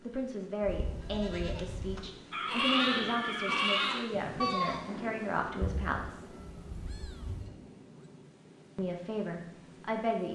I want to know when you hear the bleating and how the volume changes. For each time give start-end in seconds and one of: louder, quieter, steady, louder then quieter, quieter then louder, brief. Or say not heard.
0.6-7.5 louder then quieter.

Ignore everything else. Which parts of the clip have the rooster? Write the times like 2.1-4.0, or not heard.
2.3-4.0.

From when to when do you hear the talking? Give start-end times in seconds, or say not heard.
0.0-6.3, 8.8-10.2.